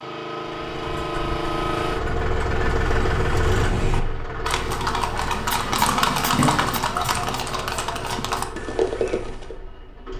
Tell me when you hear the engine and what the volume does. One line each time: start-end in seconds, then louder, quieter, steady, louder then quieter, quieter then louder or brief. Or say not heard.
0.0-10.1 quieter.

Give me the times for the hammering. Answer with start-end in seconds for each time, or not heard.
not heard.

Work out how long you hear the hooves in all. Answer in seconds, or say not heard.
9 s.